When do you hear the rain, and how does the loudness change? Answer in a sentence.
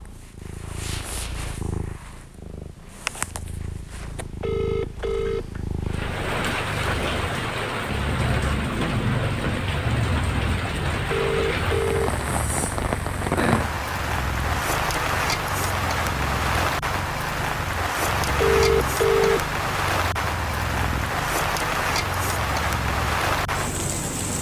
You can hear the rain from 5.8 to 24.3 s, at a steady volume.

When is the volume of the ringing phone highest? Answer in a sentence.
The loudest moment of the ringing phone is at 19 seconds.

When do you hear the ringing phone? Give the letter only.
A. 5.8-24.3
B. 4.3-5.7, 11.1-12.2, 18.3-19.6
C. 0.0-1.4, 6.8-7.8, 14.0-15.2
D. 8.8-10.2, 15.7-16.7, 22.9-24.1
B.